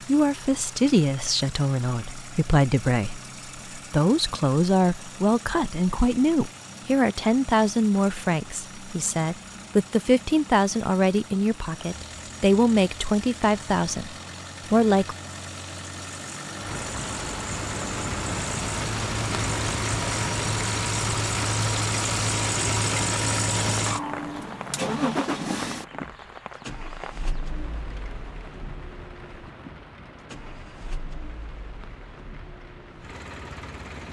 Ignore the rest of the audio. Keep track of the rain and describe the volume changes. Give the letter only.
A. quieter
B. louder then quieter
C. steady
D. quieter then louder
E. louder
A.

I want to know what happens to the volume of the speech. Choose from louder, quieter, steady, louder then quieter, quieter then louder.
steady.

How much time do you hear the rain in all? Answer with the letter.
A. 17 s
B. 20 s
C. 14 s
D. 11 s
A.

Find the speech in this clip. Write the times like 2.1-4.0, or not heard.
0.1-15.2.